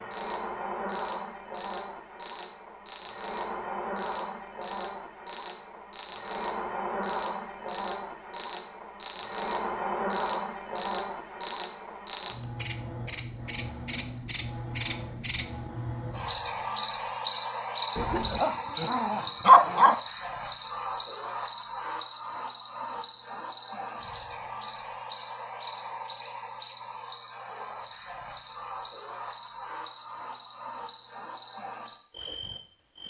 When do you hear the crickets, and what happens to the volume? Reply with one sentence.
You can hear the crickets from 0.0 to 33.0 s, getting louder then quieter.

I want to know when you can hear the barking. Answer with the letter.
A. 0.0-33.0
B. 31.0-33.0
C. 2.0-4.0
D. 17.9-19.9
D.